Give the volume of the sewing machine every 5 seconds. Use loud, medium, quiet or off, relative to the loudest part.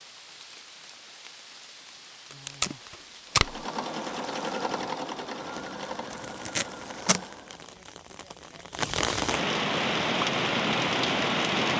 loud, medium, off.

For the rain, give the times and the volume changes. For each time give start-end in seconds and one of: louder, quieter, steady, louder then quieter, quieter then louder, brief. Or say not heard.
0.0-11.7 louder.